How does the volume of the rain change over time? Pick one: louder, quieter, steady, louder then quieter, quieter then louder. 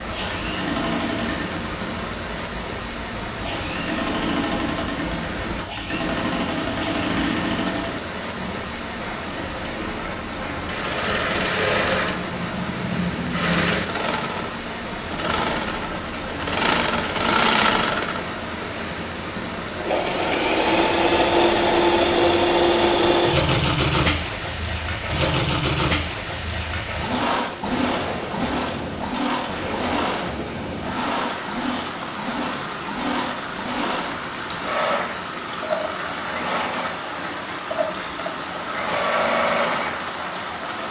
steady.